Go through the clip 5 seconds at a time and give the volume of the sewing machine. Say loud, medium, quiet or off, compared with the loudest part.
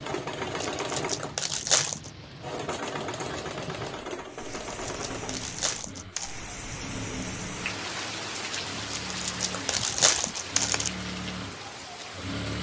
loud, medium, loud.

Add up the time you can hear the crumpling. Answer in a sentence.
You can hear the crumpling for 5 seconds altogether.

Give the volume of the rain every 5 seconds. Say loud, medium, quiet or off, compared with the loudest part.
medium, loud, loud.